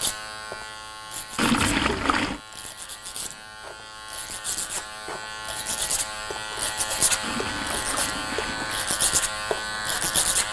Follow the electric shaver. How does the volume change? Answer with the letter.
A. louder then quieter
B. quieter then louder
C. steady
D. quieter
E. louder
E.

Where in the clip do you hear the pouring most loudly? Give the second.
2 s.